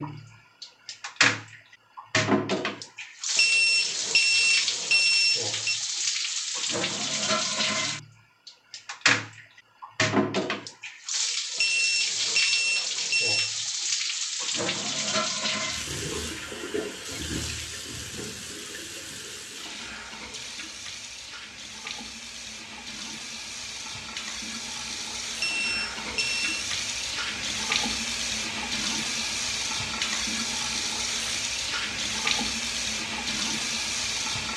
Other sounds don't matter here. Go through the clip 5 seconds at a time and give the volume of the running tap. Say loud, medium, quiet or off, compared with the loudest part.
loud, loud, loud, medium, medium, loud, loud.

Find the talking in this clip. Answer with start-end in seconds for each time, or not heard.
not heard.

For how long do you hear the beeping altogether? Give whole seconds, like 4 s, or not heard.
6 s.